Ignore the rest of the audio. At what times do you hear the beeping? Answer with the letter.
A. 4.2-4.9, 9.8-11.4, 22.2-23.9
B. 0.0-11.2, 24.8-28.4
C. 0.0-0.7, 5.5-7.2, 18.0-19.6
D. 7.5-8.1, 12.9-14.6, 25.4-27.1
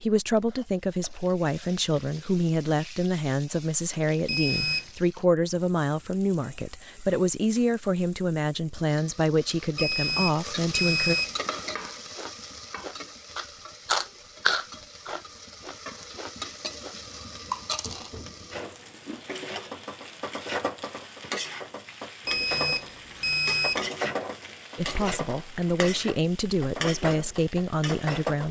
A.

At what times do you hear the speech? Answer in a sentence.
The speech can be heard from 0.0 to 11.2 s and from 24.8 to 28.4 s.